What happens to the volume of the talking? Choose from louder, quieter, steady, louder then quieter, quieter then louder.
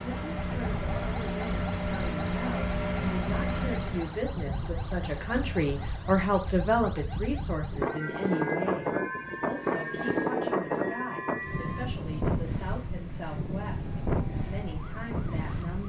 louder then quieter.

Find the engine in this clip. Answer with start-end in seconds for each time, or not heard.
0.0-4.2.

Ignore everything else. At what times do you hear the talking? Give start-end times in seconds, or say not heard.
0.0-15.8.